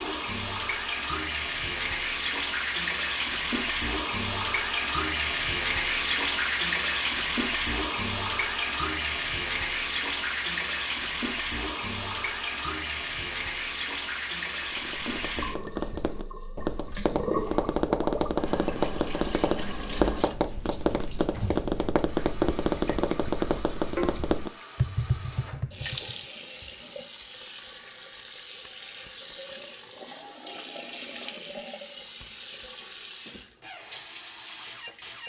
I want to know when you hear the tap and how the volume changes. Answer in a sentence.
The tap can be heard from 0.0 to 35.2 s, getting quieter.